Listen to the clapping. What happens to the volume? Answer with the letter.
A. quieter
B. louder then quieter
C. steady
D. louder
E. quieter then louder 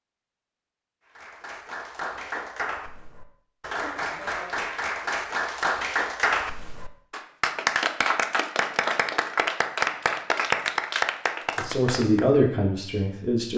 D.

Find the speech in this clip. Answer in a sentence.
You can hear the speech from 11.6 to 13.5 s.